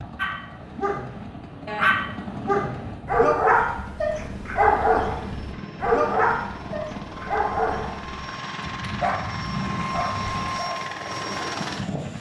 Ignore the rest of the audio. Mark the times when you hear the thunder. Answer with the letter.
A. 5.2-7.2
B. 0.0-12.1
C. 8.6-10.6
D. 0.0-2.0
C.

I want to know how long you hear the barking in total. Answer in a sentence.
The barking can be heard for 12 seconds in total.